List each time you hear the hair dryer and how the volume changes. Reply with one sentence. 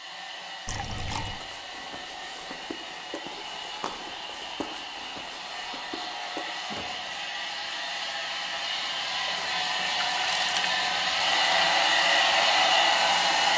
You can hear the hair dryer from 0.0 to 13.5 s, getting louder.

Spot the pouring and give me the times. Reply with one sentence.
The pouring can be heard from 0.7 to 1.4 s and from 9.2 to 10.8 s.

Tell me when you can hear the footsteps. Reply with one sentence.
You can hear the footsteps from 1.4 to 7.2 s.